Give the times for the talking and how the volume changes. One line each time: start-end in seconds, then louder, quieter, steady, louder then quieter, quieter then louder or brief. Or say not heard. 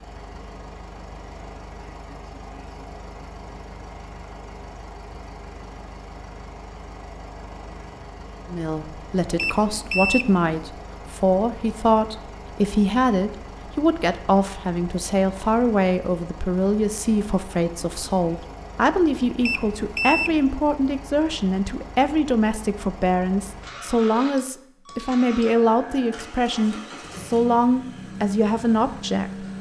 8.4-29.4 steady.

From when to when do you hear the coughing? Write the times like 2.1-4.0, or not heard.
not heard.